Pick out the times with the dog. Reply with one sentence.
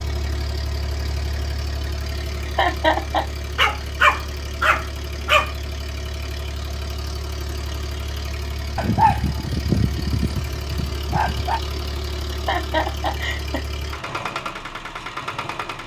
The dog can be heard from 3.5 to 5.5 s and from 8.8 to 11.6 s.